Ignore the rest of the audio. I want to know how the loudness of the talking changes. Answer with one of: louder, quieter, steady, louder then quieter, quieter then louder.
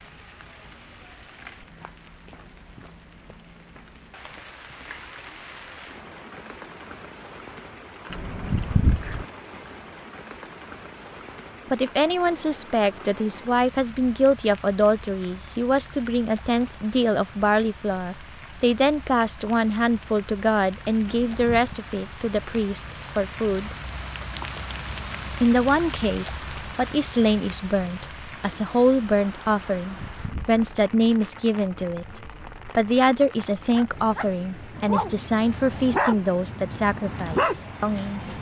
steady.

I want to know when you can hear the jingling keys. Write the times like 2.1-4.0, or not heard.
8.1-9.2, 21.1-21.8, 29.8-30.6.